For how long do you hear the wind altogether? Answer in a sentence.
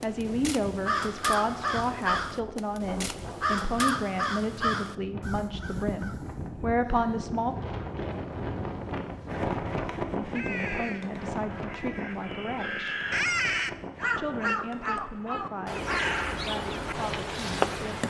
You can hear the wind for 18 seconds altogether.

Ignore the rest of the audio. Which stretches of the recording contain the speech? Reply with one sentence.
The speech can be heard from 0.0 to 7.5 s, from 10.2 to 13.0 s and from 14.2 to 18.0 s.